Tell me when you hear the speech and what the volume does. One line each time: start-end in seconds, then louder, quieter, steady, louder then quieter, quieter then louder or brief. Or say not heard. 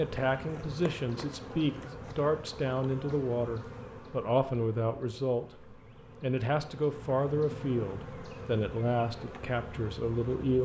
0.0-10.6 steady.